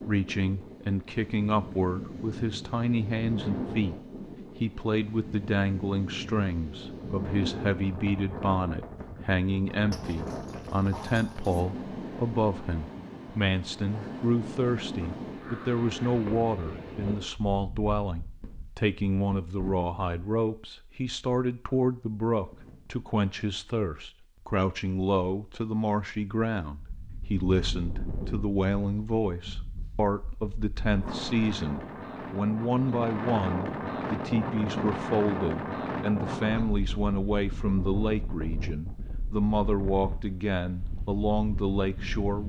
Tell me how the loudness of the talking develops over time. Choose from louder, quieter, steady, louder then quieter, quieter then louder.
steady.